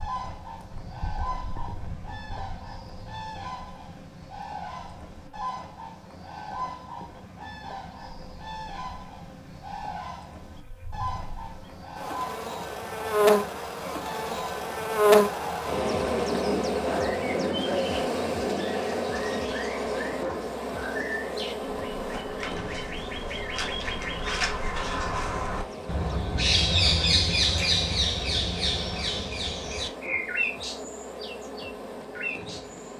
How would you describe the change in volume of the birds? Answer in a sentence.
The loudness of the birds goes up.